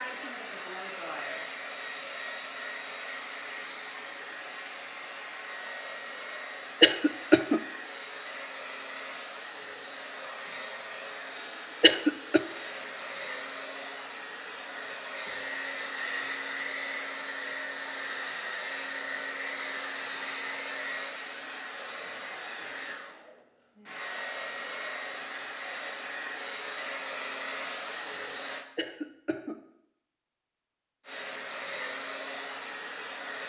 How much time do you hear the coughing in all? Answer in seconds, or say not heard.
2 s.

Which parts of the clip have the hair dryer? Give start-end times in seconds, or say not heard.
0.0-28.6, 31.1-33.4.